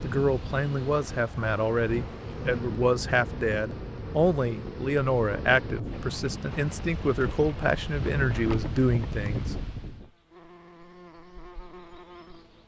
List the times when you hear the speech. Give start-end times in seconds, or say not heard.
0.0-9.6.